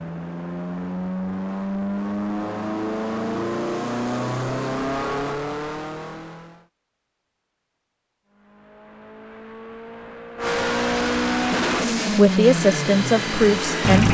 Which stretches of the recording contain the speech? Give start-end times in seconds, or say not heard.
12.1-14.0.